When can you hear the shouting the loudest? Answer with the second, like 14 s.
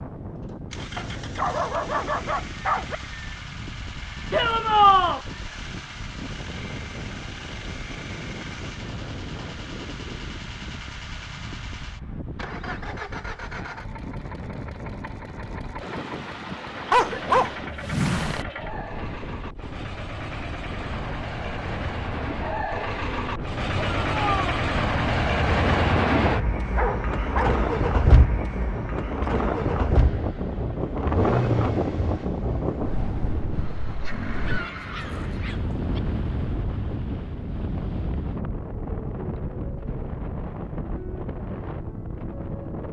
5 s.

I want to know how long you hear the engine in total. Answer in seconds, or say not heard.
35 s.